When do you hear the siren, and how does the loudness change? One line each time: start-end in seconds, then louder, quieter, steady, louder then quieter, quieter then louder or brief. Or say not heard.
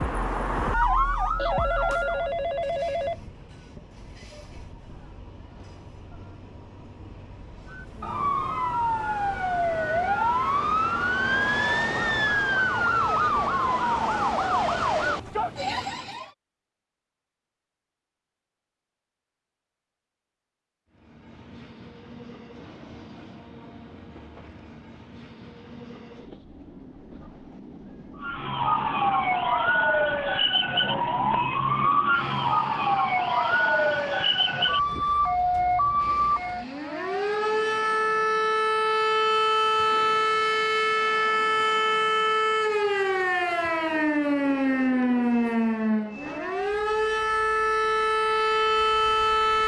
0.0-2.3 brief
7.7-16.3 steady
28.1-49.6 steady.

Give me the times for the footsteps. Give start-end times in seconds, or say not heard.
not heard.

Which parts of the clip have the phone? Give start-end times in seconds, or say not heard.
1.4-3.2.